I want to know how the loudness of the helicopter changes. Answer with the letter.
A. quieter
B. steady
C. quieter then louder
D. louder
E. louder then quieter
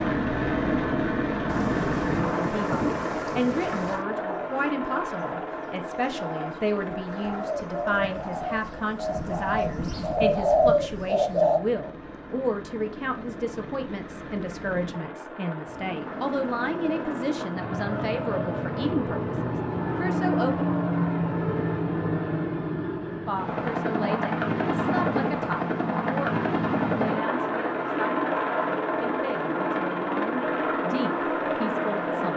C.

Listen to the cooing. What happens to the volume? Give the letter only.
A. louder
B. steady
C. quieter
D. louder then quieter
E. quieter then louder
A.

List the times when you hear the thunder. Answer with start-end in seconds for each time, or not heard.
1.4-4.0.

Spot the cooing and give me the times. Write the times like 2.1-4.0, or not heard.
4.0-11.6.